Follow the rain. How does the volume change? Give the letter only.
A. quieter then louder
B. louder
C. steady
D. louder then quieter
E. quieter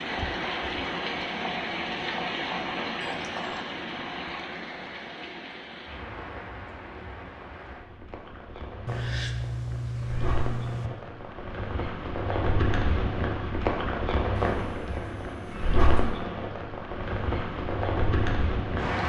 A.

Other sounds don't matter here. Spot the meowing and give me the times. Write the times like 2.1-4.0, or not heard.
3.0-3.6, 8.8-10.9, 14.3-16.2.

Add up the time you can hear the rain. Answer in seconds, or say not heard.
19 s.